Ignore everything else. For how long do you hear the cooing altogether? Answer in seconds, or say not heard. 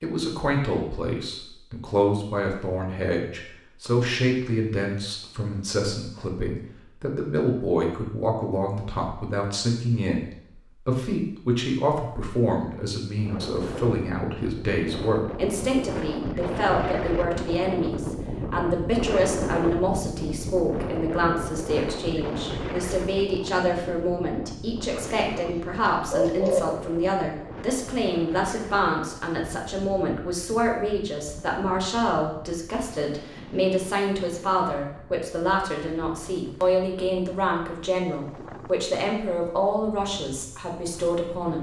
2 s.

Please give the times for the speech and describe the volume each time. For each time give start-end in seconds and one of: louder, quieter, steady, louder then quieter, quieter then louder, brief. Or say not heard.
0.0-41.5 steady.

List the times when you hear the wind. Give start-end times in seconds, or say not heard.
13.1-41.5.